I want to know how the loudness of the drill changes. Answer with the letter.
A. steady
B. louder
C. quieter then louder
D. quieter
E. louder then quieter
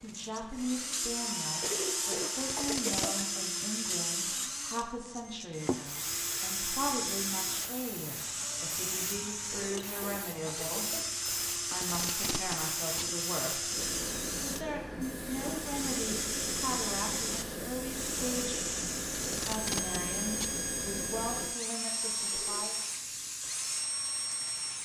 A.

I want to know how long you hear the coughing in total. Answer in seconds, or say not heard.
4 s.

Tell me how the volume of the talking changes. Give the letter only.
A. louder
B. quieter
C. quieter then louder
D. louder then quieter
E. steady
E.